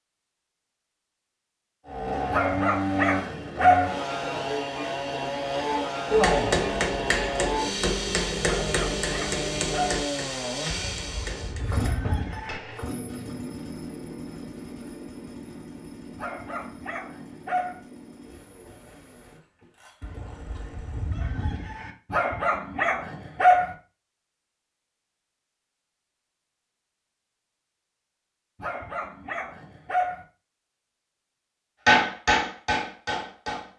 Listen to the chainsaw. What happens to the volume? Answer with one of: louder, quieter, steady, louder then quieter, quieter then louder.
quieter.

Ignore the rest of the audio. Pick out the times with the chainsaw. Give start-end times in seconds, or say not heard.
1.9-21.3.